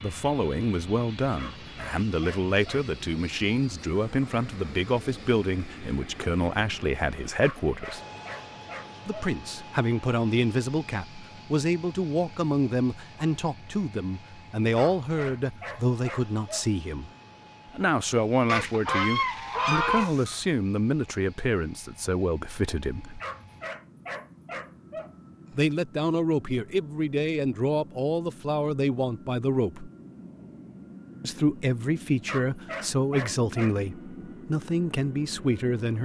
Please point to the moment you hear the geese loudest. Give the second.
20 s.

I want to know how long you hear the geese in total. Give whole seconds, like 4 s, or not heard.
2 s.